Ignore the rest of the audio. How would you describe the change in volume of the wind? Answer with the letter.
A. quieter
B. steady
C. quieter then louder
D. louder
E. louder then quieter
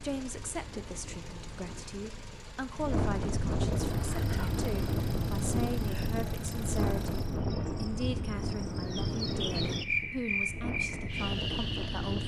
E.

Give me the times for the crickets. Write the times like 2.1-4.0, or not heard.
3.8-12.2.